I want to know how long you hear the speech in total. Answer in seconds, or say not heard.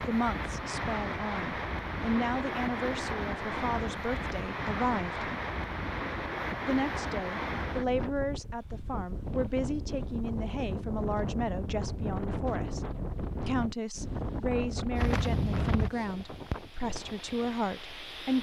16 s.